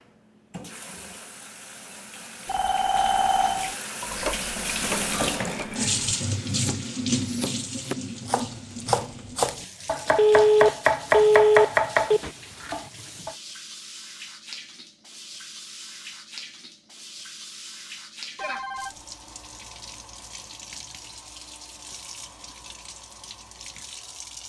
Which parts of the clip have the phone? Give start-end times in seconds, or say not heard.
2.5-3.8, 10.2-12.2, 18.4-18.9.